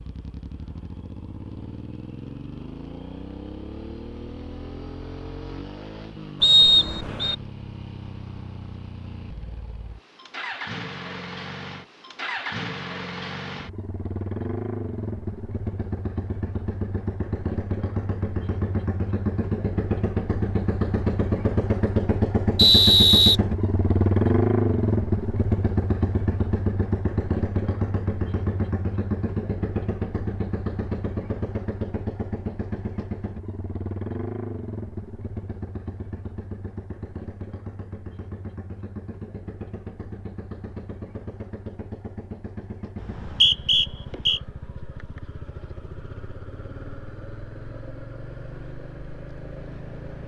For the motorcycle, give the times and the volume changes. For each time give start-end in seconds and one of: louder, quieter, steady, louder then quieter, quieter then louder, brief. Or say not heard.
0.0-50.2 louder then quieter.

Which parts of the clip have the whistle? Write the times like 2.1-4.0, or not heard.
6.4-7.3, 22.6-23.4, 43.0-44.4.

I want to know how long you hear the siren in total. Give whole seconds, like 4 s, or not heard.
not heard.